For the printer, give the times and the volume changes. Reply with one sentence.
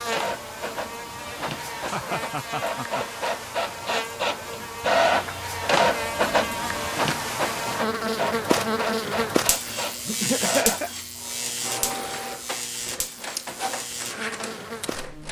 The printer can be heard from 0.0 to 15.2 s, getting louder then quieter.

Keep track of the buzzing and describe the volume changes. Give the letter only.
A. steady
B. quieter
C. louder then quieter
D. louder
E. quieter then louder
C.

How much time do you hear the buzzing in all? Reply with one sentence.
You can hear the buzzing for 15 seconds altogether.